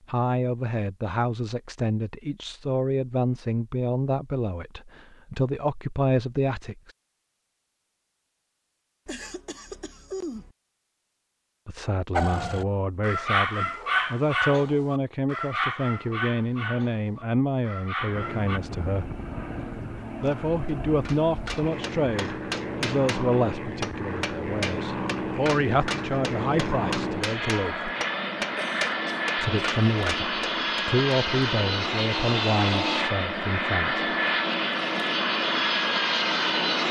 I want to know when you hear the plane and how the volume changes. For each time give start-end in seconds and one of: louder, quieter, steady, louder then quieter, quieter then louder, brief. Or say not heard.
18.0-36.8 louder.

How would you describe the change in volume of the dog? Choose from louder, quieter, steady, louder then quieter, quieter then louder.
quieter.